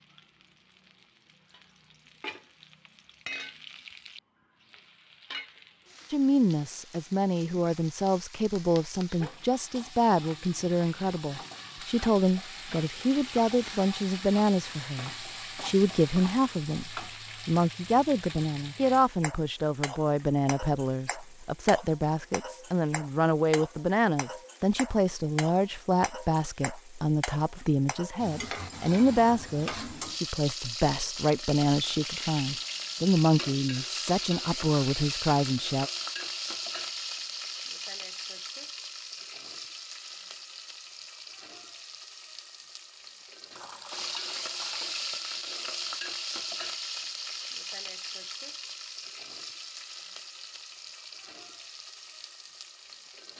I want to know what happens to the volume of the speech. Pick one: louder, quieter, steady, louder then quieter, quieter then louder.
steady.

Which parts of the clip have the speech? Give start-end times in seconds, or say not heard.
6.1-35.9.